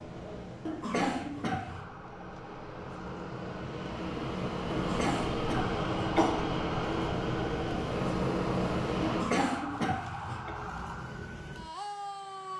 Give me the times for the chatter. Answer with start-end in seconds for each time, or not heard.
not heard.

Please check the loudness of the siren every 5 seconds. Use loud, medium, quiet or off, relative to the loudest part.
medium, loud, loud.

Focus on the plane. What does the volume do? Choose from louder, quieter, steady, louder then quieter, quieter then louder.
louder.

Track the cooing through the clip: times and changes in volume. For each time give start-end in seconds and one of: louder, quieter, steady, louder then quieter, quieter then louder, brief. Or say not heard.
not heard.